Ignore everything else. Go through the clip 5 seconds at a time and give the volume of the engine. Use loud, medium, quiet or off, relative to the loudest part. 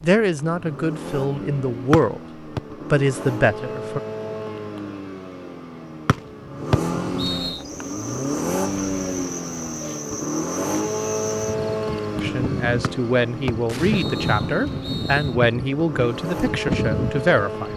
medium, loud, loud, loud.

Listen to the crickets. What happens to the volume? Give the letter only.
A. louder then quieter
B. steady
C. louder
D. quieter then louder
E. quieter
C.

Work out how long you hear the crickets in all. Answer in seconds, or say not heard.
10 s.